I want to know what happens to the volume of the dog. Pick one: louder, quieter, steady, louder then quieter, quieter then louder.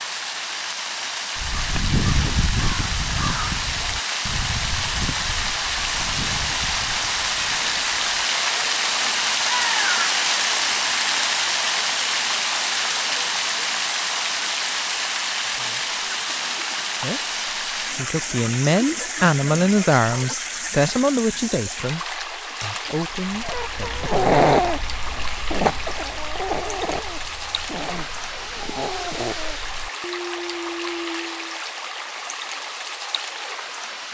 quieter.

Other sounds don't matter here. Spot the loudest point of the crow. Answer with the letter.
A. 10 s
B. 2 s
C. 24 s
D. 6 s
B.